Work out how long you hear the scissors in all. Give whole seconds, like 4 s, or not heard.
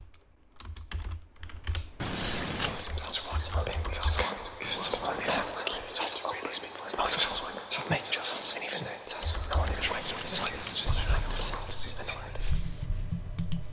4 s.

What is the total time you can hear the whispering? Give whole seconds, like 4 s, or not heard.
10 s.